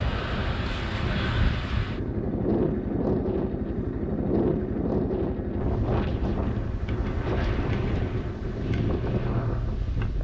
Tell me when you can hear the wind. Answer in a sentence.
You can hear the wind from 0.0 to 10.1 s.